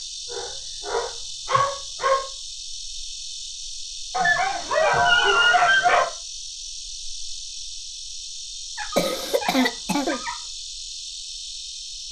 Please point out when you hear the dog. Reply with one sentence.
The dog can be heard from 0.3 to 2.2 s, from 4.1 to 6.1 s and from 8.8 to 10.4 s.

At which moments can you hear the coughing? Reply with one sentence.
You can hear the coughing from 8.9 to 10.2 s.